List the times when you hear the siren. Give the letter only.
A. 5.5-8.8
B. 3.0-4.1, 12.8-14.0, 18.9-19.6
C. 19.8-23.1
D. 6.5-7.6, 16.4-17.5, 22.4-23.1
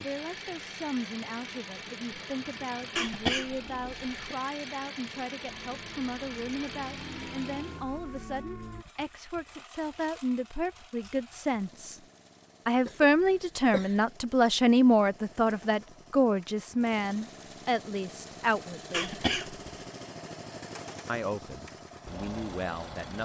A.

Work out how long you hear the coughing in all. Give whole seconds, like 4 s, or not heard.
3 s.